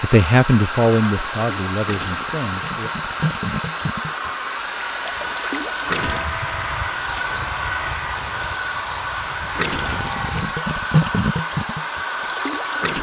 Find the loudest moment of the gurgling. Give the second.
11 s.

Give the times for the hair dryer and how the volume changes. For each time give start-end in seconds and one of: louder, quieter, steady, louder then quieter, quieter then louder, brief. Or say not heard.
0.0-12.9 steady.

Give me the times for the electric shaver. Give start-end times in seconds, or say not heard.
4.7-10.4.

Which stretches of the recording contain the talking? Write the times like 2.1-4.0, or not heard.
0.0-2.9.